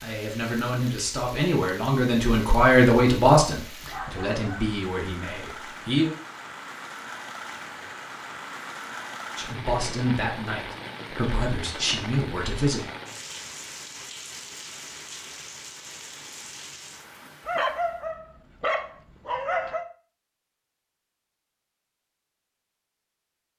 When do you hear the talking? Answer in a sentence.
You can hear the talking from 0.0 to 6.2 s and from 9.3 to 12.8 s.